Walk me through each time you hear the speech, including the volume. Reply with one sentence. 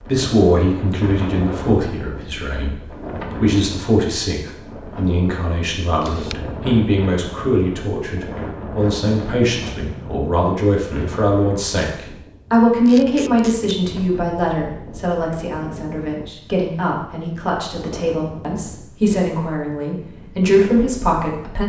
You can hear the speech from 0.0 to 21.6 s, at a steady volume.